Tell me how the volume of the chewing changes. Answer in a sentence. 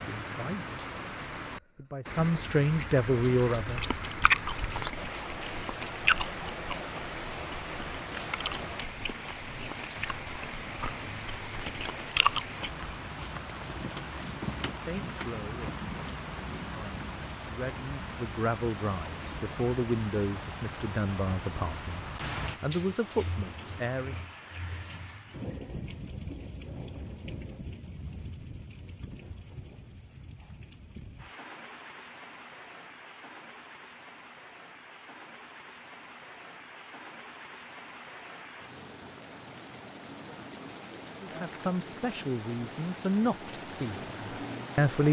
The volume of the chewing goes down, then up.